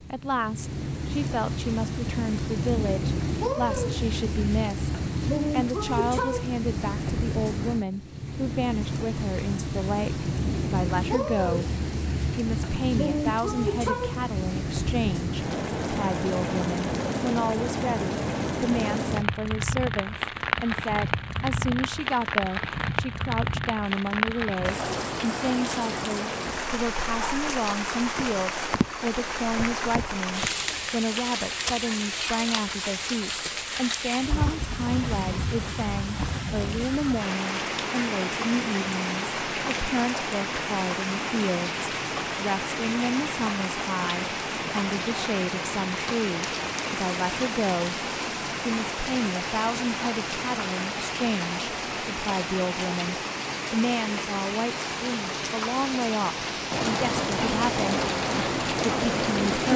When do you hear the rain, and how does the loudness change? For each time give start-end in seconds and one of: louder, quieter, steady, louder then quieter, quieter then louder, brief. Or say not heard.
0.0-59.7 steady.